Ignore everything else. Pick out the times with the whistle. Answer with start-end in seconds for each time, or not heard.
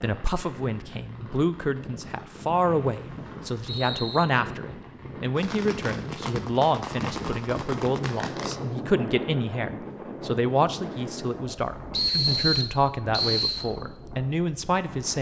2.6-4.2, 11.9-13.7.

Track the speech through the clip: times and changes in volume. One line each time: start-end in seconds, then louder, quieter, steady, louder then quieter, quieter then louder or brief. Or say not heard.
0.0-15.1 steady.